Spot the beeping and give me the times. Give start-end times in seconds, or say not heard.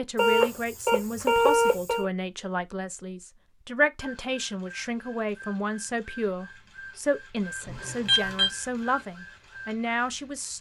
0.1-2.0, 7.7-8.5.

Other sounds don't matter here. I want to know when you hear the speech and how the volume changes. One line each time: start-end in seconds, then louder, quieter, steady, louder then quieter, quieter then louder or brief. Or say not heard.
0.0-10.5 steady.